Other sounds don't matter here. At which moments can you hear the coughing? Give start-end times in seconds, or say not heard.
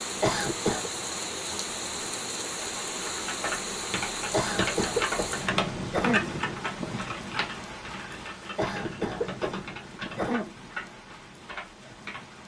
0.2-0.9, 4.3-6.2, 8.6-10.5.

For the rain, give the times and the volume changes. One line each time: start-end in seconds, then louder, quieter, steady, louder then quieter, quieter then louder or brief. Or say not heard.
0.0-12.4 quieter.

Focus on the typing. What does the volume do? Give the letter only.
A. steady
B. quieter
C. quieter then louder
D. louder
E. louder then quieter
B.